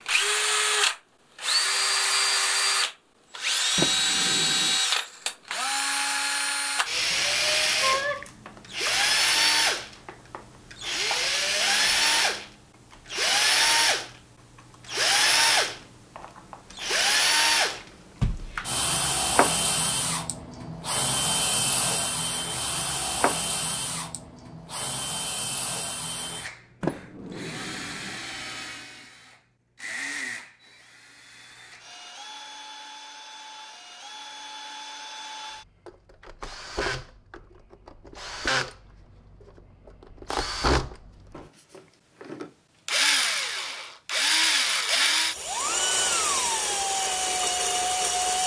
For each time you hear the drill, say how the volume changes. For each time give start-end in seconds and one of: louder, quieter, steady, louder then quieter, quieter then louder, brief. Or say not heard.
0.1-48.4 quieter then louder.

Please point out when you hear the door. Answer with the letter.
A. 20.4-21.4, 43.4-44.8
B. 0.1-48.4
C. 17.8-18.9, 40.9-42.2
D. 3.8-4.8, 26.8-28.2
D.